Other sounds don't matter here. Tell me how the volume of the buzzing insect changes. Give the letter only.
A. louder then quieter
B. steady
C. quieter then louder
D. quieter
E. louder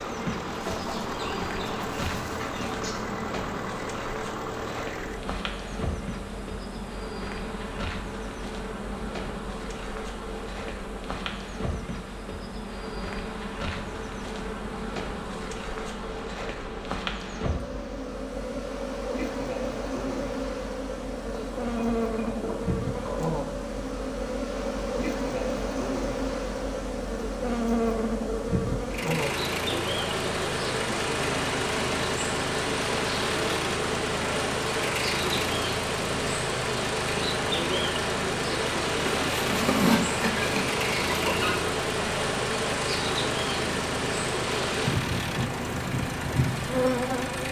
E.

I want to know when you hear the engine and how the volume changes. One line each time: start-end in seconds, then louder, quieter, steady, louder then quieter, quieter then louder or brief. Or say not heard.
0.0-47.4 quieter then louder.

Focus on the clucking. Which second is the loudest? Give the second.
40 s.